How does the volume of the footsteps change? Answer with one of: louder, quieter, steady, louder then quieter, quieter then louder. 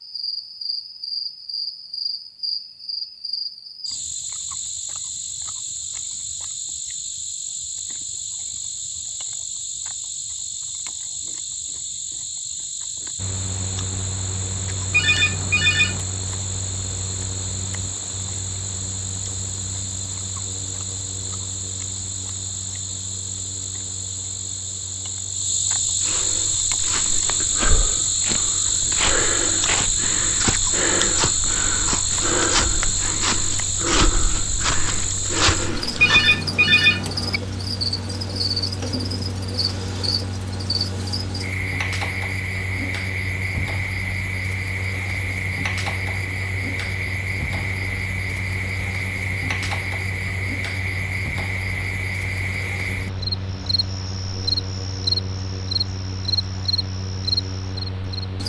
louder.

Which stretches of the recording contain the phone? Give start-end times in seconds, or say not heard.
14.9-16.1, 36.0-37.4.